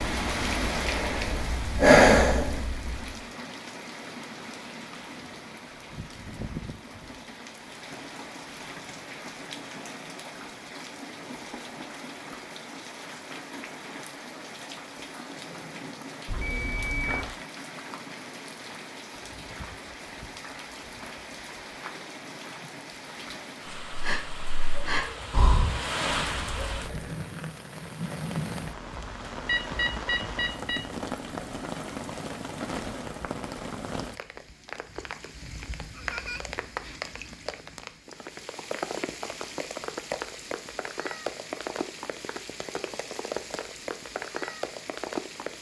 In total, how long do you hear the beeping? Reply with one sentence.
The beeping can be heard for 3 seconds in total.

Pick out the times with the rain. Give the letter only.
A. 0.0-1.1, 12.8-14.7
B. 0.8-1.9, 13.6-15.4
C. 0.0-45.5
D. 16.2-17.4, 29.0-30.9
C.